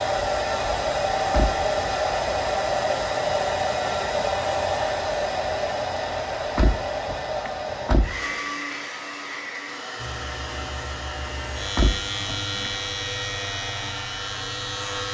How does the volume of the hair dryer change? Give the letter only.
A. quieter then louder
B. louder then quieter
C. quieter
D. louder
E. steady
C.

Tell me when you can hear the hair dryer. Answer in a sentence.
You can hear the hair dryer from 0.0 to 15.1 s.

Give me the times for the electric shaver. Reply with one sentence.
The electric shaver can be heard from 9.9 to 15.1 s.